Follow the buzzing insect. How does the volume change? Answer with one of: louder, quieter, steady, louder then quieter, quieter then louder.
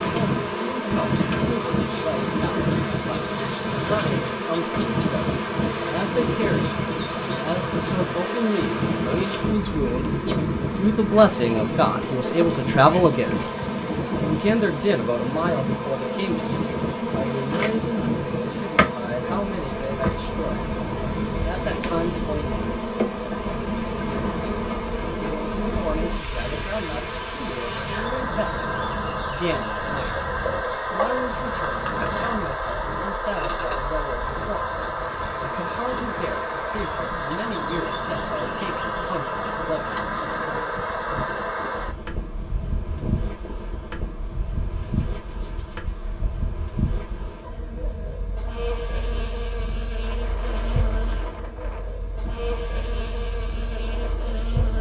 quieter.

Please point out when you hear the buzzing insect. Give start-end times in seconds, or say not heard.
0.0-54.7.